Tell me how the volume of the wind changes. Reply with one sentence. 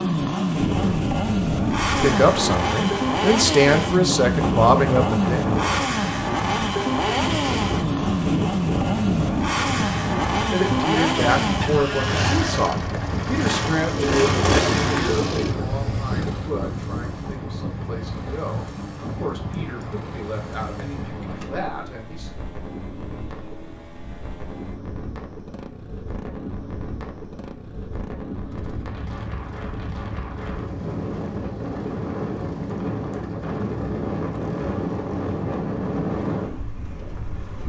The volume of the wind goes down, then up.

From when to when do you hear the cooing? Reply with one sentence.
You can hear the cooing from 13.9 to 15.5 s.